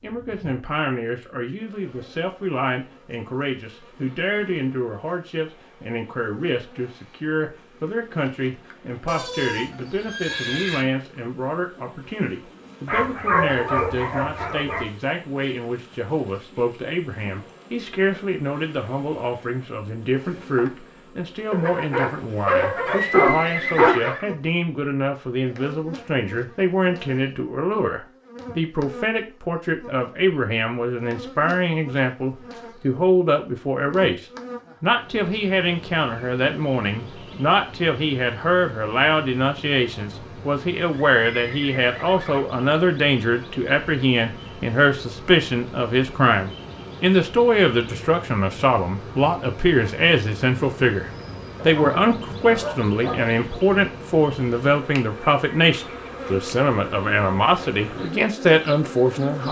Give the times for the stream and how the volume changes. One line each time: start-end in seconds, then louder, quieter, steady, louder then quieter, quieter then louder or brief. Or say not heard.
not heard.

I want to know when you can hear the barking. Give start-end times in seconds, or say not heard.
12.8-14.8, 21.5-24.1, 51.8-53.3.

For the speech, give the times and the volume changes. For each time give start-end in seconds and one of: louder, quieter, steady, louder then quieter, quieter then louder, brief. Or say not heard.
0.0-59.4 louder.